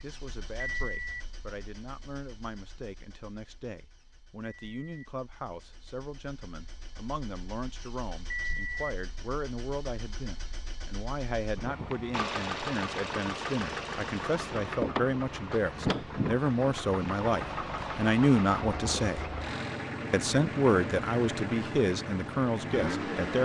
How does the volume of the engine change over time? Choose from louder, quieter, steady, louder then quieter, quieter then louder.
louder.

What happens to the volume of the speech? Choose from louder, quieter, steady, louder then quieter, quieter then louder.
louder.